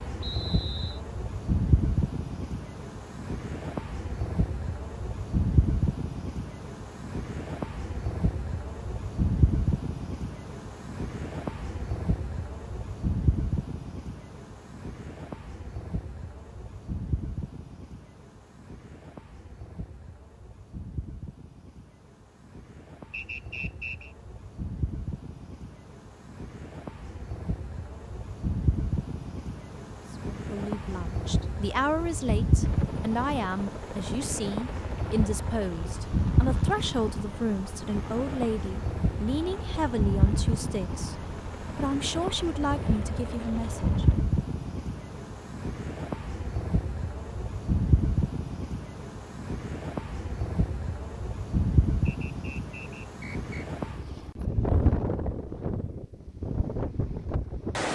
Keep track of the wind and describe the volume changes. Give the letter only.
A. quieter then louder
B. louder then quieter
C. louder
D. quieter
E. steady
A.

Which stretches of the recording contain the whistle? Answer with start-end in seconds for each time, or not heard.
0.2-1.0, 23.1-24.1, 52.0-53.6.